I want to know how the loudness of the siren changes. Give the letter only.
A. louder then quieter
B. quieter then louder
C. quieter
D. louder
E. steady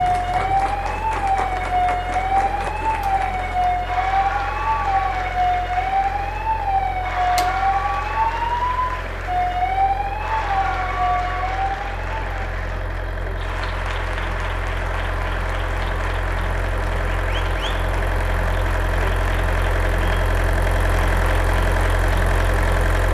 E.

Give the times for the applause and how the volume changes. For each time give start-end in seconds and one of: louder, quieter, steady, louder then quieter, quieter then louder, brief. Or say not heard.
0.0-22.9 steady.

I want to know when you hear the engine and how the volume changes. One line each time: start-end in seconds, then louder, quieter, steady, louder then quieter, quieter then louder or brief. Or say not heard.
0.0-23.0 louder.